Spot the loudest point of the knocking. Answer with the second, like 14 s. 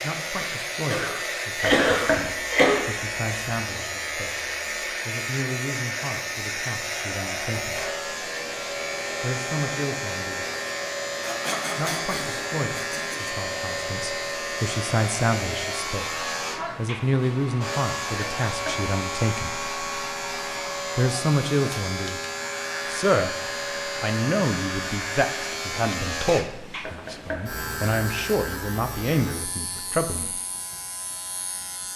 2 s.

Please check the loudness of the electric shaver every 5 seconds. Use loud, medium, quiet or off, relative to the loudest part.
loud, loud, loud, loud, loud, loud, medium.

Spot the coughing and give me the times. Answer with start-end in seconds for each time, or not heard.
0.9-2.9, 11.2-13.4, 26.2-26.9.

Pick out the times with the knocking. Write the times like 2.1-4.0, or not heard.
1.6-2.2, 18.4-18.9, 26.9-27.4.